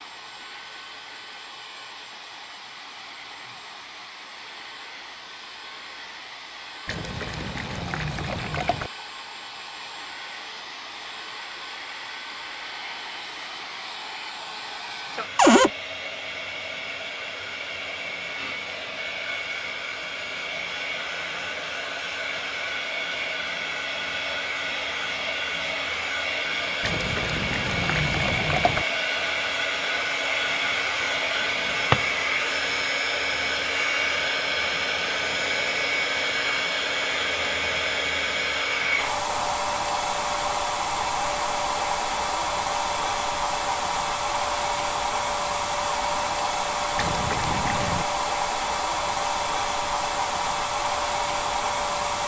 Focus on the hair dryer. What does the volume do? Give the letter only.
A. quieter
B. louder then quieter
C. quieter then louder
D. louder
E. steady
D.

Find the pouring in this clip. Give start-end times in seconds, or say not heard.
6.8-8.9, 26.8-28.9, 47.0-48.0.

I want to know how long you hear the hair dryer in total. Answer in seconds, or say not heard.
52 s.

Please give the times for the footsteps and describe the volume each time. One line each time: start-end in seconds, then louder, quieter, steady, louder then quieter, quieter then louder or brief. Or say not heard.
not heard.